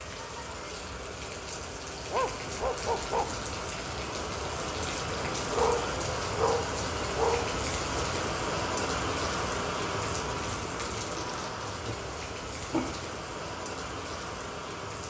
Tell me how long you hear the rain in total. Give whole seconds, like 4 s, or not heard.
15 s.